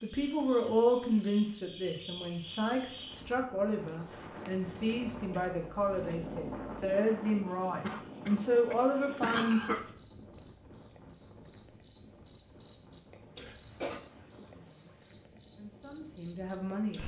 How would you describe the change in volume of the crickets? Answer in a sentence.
The loudness of the crickets goes up.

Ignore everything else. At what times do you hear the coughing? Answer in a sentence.
The coughing can be heard from 0.3 to 0.9 s, from 7.8 to 9.8 s and from 13.3 to 14.0 s.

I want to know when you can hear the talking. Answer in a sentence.
The talking can be heard from 0.0 to 9.8 s, from 14.3 to 14.9 s and from 15.6 to 17.0 s.